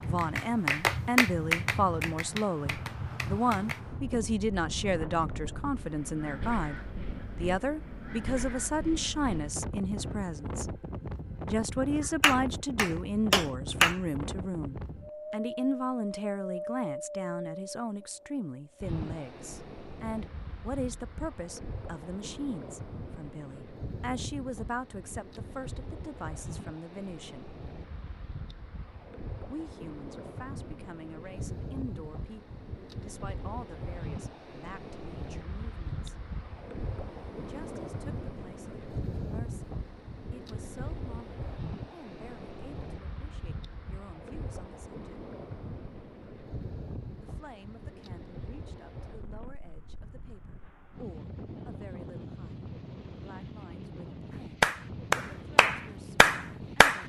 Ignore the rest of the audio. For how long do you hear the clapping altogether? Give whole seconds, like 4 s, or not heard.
8 s.